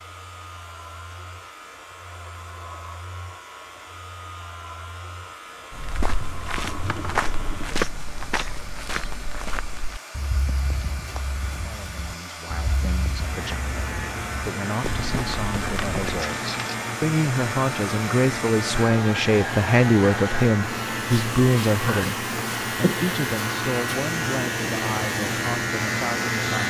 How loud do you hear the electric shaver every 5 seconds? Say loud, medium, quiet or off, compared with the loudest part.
quiet, quiet, medium, medium, loud, loud.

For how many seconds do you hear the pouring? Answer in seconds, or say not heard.
2 s.